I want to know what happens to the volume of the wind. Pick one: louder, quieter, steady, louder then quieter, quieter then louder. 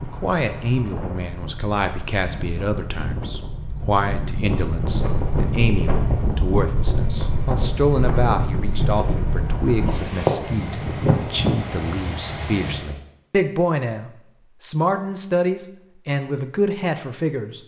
louder.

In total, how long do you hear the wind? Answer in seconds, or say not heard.
13 s.